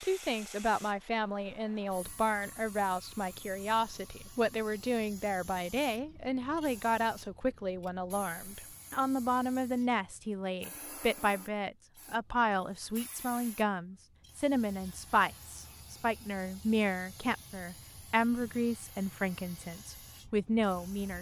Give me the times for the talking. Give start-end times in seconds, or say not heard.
0.0-21.1.